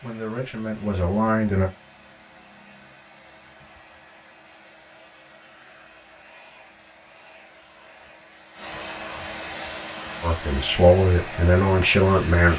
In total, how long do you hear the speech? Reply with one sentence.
You can hear the speech for 4 seconds altogether.